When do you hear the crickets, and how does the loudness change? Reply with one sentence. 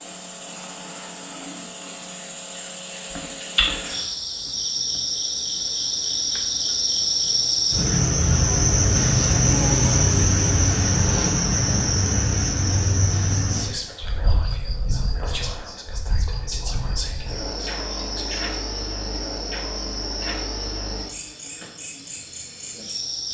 The crickets can be heard from 0.0 to 23.2 s, getting louder then quieter.